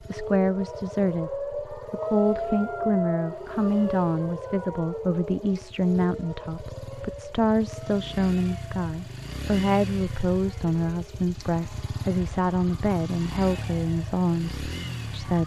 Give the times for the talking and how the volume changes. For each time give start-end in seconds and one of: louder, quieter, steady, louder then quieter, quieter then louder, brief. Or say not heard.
0.0-15.4 steady.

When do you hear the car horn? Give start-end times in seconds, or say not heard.
not heard.